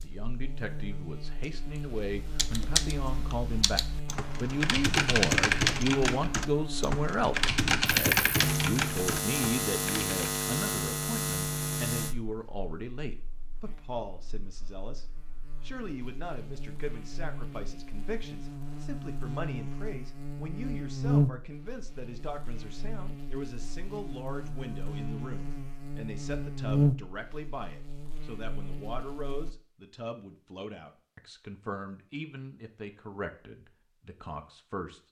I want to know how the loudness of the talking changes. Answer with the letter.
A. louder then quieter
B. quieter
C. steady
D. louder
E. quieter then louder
B.